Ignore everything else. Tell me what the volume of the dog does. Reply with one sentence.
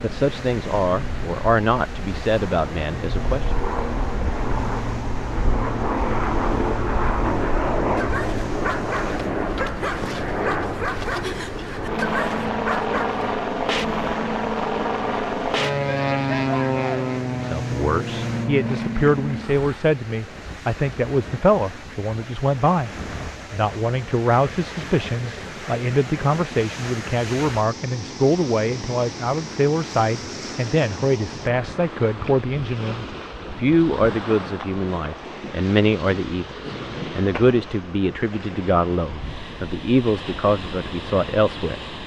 The loudness of the dog stays about the same.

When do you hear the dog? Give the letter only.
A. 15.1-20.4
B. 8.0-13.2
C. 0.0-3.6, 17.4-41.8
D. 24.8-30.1
B.